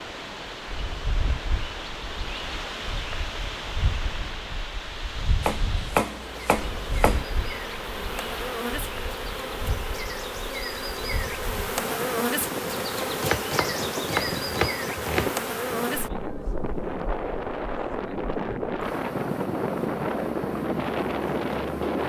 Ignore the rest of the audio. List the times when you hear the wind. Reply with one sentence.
You can hear the wind from 0.0 to 22.0 s.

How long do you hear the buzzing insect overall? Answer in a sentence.
The buzzing insect can be heard for 16 seconds in total.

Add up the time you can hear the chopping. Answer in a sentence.
The chopping can be heard for 4 seconds in total.